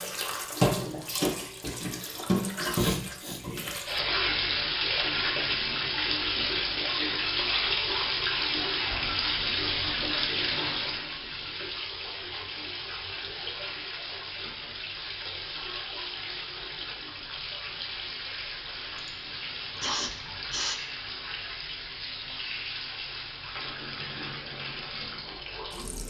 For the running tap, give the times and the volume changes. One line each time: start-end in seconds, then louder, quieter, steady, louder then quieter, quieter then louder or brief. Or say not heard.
0.0-26.0 quieter.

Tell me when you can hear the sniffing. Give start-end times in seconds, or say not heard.
2.8-3.4, 18.9-20.8.